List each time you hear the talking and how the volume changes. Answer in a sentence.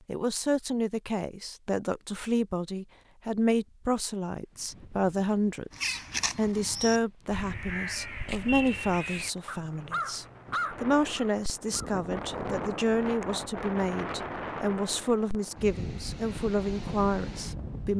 You can hear the talking from 0.1 to 17.9 s, at a steady volume.